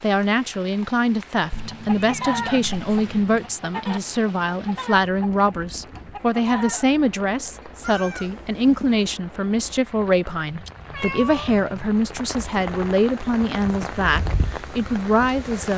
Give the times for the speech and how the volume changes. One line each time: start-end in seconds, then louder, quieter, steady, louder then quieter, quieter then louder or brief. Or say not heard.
0.0-15.7 steady.